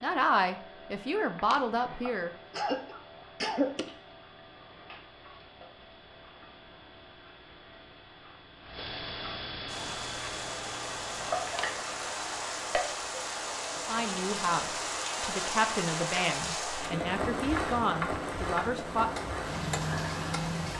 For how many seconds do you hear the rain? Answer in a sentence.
You can hear the rain for 11 seconds altogether.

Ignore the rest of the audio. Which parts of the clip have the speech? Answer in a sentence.
The speech can be heard from 0.0 to 2.3 s and from 13.8 to 19.4 s.